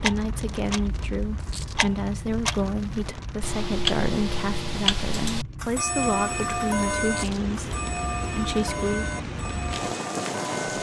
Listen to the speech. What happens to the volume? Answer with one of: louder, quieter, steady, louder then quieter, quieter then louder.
steady.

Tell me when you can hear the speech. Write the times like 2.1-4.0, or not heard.
0.0-9.1.